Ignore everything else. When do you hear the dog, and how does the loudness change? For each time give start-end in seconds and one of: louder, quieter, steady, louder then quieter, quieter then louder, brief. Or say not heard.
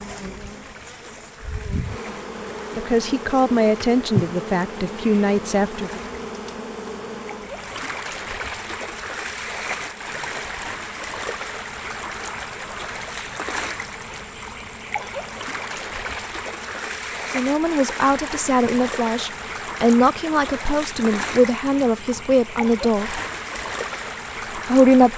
not heard.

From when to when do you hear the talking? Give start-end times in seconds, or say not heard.
2.8-6.0, 17.3-23.2, 24.6-25.1.